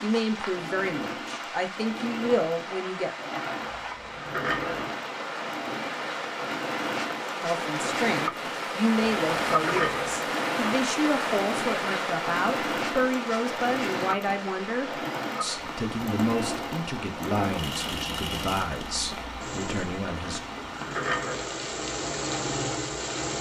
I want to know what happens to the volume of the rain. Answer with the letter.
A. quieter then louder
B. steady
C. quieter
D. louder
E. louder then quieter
E.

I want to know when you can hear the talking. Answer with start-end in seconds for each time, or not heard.
0.0-3.1, 7.4-20.4.